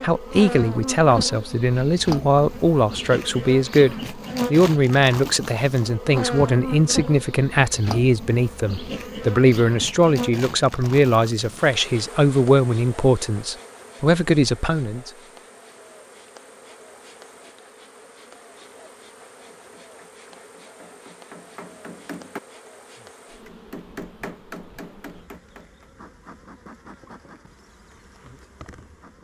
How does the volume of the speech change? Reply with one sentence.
The loudness of the speech stays about the same.